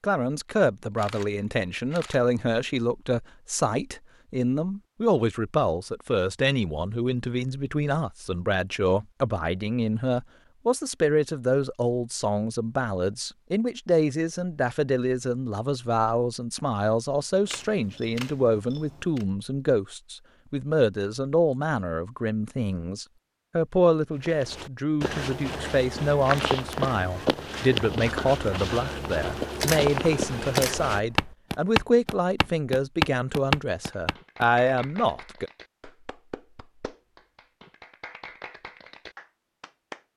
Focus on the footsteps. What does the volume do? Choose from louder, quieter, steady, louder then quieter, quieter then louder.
louder.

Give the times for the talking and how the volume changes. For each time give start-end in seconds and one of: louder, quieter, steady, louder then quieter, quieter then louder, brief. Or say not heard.
0.0-35.5 steady.